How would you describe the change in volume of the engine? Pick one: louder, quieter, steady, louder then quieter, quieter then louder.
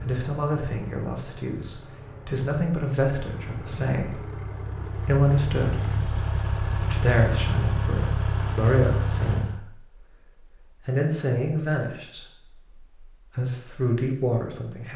louder.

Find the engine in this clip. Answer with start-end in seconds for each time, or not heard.
0.0-9.6.